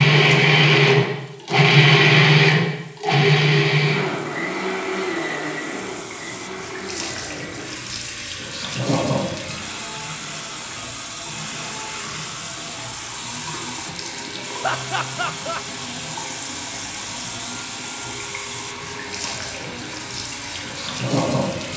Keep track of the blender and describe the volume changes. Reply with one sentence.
The volume of the blender goes down.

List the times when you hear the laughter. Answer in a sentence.
The laughter can be heard from 14.6 to 15.6 s.